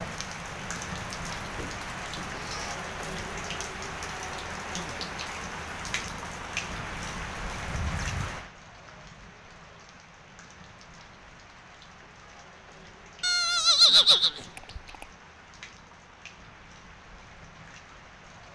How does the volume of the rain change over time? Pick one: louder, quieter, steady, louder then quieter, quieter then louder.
quieter.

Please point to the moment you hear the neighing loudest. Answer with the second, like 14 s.
14 s.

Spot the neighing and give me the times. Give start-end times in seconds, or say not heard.
1.6-2.8, 7.7-8.3, 13.2-15.1.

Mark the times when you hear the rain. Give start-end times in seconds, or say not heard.
0.0-18.5.